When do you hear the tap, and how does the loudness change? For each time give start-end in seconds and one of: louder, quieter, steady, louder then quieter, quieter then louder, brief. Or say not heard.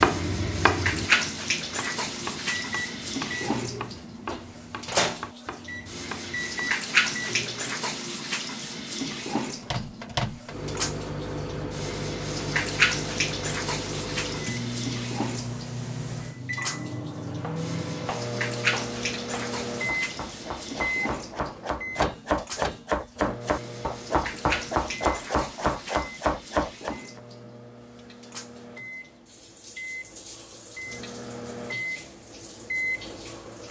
0.0-33.6 quieter.